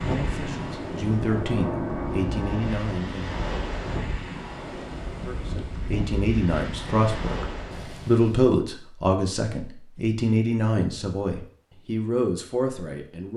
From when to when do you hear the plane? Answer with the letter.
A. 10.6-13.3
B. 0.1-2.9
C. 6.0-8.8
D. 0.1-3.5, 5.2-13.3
B.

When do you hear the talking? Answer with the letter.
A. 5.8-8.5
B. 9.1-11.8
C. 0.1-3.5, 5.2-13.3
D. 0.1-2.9
C.